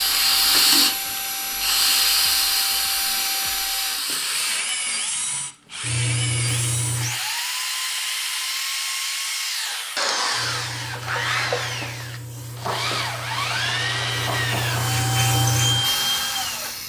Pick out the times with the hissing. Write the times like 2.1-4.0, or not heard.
0.0-7.2, 10.3-16.8.